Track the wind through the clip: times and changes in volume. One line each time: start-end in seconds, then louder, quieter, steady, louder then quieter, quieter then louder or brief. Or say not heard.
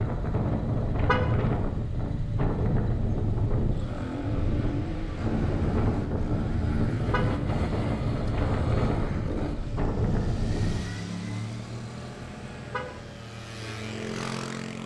0.0-10.8 steady.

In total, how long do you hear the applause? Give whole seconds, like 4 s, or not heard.
not heard.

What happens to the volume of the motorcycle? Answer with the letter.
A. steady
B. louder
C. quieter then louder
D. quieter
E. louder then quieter
A.